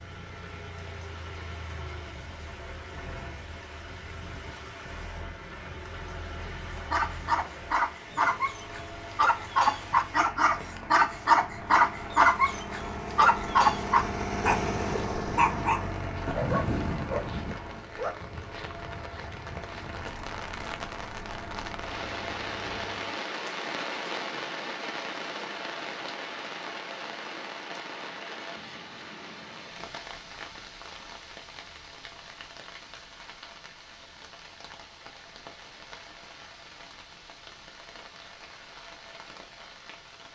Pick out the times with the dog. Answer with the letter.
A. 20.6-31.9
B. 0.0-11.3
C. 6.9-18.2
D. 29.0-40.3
C.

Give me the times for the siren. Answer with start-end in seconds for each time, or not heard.
not heard.